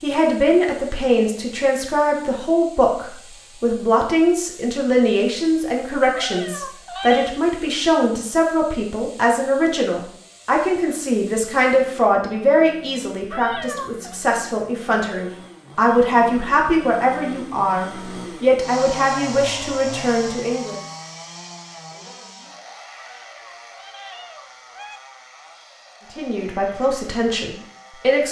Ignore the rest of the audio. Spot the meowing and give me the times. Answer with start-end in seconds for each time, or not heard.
6.1-7.3, 13.3-14.2, 23.0-25.0.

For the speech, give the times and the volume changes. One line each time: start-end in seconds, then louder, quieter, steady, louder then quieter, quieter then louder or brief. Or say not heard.
0.0-20.8 steady
26.1-28.2 brief.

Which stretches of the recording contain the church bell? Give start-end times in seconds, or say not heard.
not heard.